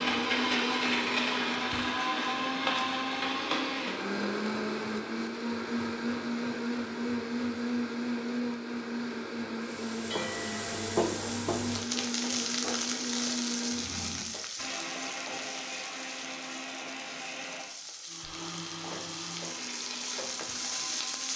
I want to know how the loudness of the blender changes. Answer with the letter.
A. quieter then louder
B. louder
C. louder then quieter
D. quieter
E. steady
D.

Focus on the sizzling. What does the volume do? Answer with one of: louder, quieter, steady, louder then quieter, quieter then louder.
quieter then louder.